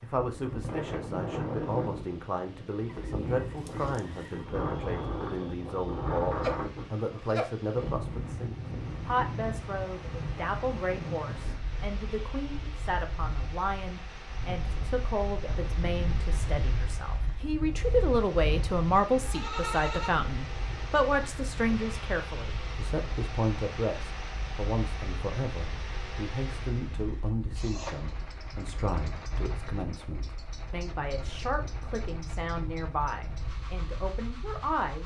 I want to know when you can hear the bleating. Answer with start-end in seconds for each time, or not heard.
6.3-7.5, 19.1-20.3.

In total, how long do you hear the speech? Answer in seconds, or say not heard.
35 s.